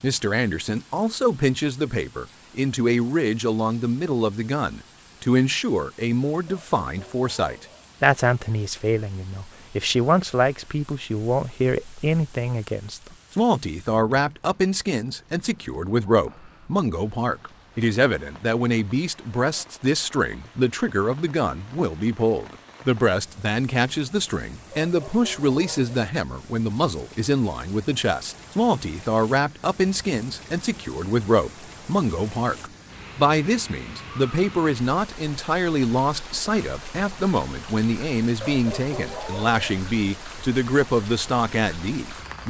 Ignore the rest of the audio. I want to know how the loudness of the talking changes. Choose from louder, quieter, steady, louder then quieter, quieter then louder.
steady.